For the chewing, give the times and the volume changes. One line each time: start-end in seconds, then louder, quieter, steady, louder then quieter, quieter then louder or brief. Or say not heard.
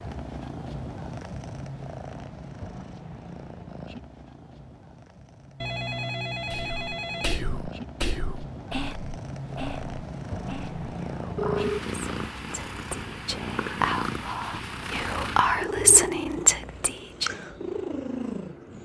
not heard.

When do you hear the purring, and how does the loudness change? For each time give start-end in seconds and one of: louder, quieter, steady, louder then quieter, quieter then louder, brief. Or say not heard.
0.0-18.7 quieter then louder.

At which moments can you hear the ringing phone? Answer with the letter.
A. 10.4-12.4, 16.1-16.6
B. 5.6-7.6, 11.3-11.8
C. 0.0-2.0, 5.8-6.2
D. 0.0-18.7
B.